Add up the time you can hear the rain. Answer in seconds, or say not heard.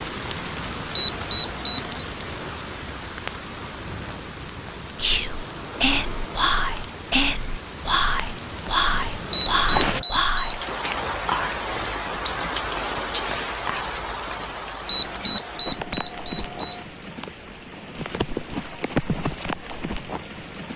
21 s.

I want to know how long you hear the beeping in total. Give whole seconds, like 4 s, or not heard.
4 s.